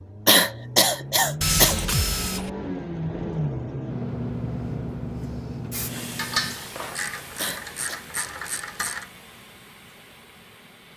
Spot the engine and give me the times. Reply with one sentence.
The engine can be heard from 0.0 to 6.5 s.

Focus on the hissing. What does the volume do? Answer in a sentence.
The volume of the hissing goes down.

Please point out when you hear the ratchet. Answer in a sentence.
You can hear the ratchet from 1.4 to 2.5 s and from 6.2 to 9.1 s.